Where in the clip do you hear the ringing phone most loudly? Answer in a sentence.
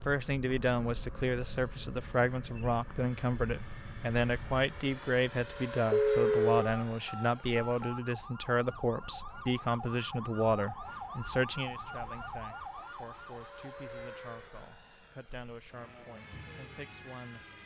The volume of the ringing phone peaks at 6 seconds.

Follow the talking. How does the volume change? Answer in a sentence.
The loudness of the talking goes down.